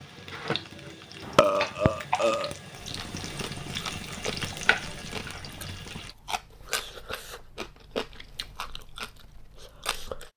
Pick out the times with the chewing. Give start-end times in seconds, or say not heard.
2.8-10.3.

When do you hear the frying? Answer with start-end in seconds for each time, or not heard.
0.0-6.2.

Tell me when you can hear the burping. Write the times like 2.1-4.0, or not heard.
1.2-2.5.